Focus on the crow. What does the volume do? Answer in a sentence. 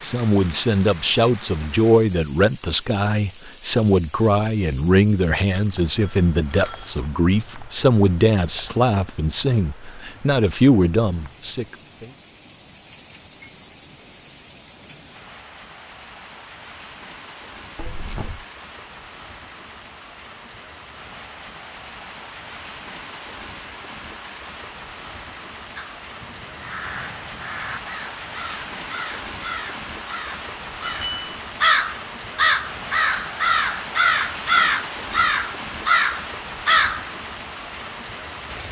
The loudness of the crow goes up.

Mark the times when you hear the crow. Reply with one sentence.
You can hear the crow from 25.8 to 37.0 s.